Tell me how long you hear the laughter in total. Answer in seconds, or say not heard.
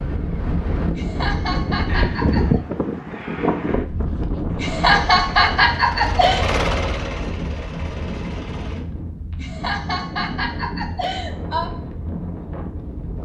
6 s.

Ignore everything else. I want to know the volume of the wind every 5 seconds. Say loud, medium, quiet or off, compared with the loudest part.
loud, medium, medium.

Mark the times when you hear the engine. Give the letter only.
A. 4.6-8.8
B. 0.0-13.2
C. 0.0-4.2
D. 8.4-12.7
A.